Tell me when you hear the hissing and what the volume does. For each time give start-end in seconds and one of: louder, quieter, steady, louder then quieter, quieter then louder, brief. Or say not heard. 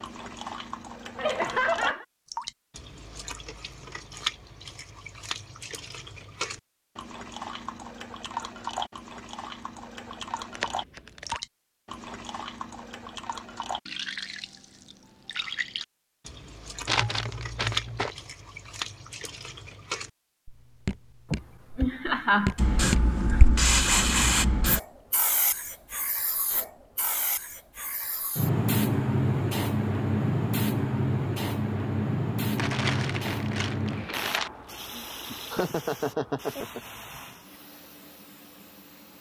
22.6-39.1 quieter.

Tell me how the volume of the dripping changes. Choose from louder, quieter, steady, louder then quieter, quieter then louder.
steady.